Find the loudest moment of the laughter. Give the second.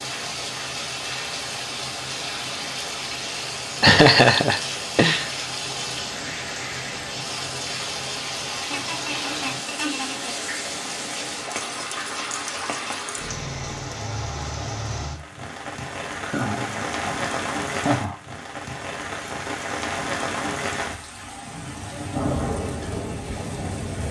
4 s.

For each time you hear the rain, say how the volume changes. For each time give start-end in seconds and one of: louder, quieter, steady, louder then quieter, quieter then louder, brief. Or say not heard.
0.0-24.0 steady.